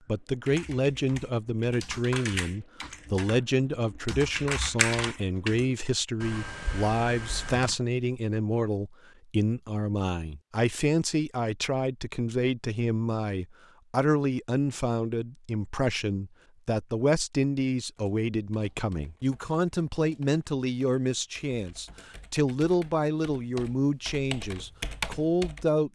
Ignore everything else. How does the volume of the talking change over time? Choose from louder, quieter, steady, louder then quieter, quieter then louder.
steady.